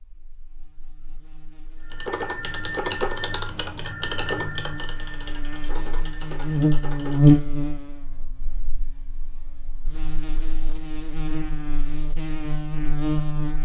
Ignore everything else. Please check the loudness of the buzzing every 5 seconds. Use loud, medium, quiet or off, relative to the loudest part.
quiet, loud, medium.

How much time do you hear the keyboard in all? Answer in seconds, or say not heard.
6 s.